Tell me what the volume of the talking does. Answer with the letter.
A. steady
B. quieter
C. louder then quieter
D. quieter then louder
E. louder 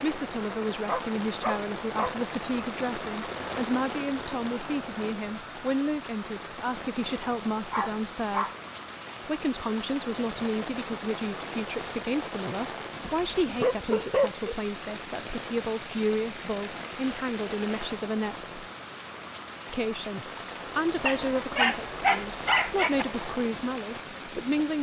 A.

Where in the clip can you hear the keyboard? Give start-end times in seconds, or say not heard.
not heard.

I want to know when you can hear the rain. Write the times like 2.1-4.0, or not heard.
0.0-24.7.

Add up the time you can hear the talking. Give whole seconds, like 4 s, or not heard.
23 s.